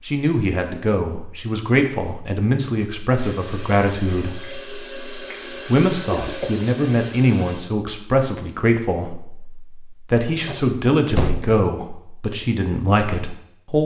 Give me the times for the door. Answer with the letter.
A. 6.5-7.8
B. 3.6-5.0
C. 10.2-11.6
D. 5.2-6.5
C.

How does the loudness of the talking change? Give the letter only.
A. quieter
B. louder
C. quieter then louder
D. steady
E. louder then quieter
D.